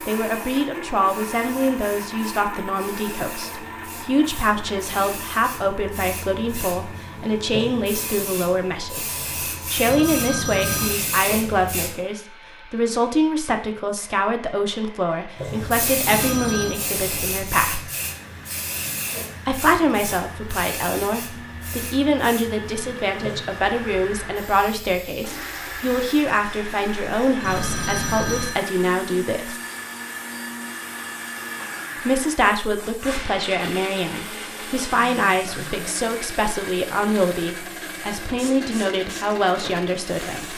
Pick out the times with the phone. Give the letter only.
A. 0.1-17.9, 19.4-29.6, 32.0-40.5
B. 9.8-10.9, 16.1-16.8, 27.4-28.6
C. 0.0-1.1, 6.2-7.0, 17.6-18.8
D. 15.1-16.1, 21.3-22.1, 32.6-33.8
B.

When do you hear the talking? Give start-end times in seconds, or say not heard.
0.1-17.9, 19.4-29.6, 32.0-40.5.